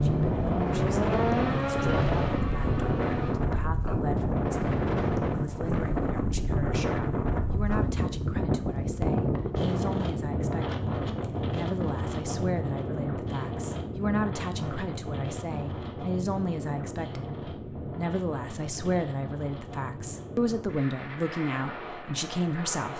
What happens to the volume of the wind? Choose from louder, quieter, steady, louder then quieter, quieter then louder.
quieter.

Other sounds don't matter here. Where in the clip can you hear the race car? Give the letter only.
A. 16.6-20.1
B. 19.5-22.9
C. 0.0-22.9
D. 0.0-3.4
D.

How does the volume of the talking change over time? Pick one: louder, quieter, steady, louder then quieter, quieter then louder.
louder.